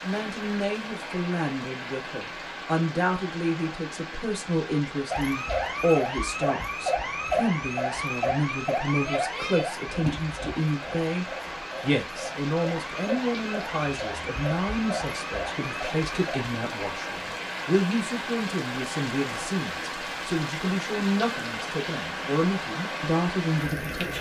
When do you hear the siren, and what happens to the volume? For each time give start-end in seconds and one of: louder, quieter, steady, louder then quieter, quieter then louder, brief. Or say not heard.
5.1-16.6 quieter.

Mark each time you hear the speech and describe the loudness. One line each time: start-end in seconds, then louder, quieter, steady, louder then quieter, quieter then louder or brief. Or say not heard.
0.0-24.1 steady.